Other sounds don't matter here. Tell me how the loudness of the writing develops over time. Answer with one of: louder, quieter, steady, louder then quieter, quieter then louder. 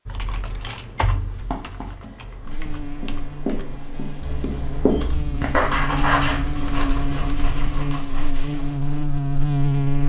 louder then quieter.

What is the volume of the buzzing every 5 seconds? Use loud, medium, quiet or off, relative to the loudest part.
medium, loud.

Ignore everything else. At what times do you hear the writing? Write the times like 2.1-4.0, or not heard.
1.1-8.9.